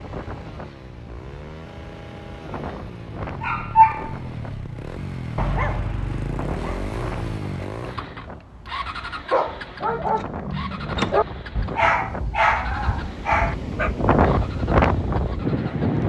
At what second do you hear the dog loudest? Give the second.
4 s.